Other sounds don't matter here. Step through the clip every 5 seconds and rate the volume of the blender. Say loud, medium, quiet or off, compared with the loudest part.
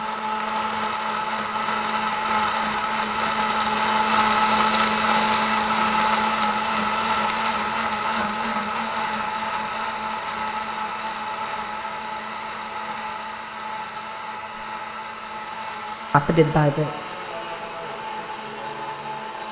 loud, loud, medium, medium.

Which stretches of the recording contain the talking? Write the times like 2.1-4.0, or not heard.
16.1-16.9.